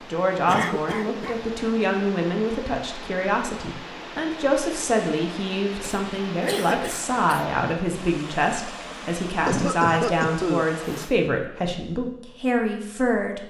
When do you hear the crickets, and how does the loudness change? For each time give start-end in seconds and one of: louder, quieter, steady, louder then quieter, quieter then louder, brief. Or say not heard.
not heard.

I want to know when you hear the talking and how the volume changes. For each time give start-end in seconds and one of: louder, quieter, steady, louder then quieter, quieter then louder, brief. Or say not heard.
0.1-13.4 steady.